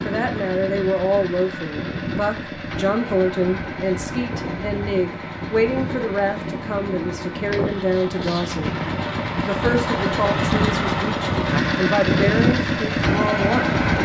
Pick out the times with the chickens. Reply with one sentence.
You can't hear the chickens here.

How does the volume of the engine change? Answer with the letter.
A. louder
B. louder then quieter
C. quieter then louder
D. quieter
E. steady
A.